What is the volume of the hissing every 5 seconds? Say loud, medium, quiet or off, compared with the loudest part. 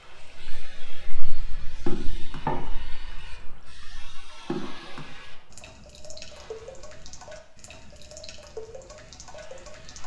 loud, quiet.